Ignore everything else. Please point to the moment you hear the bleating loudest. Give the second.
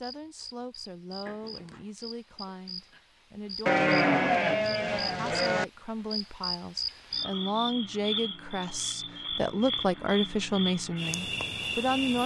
4 s.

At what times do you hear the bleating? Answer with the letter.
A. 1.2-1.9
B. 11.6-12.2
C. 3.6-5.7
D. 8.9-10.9
C.